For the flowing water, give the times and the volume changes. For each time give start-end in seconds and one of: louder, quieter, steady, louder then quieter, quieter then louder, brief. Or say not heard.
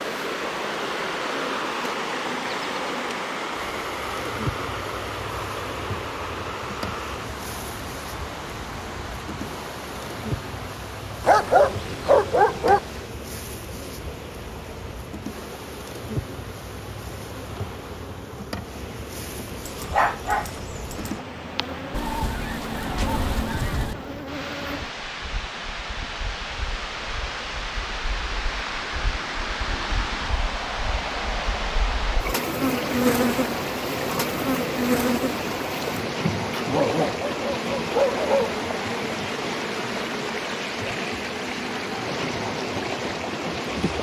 0.0-43.9 quieter then louder.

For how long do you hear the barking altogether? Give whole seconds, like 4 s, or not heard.
5 s.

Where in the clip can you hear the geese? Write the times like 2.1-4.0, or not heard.
21.9-23.9.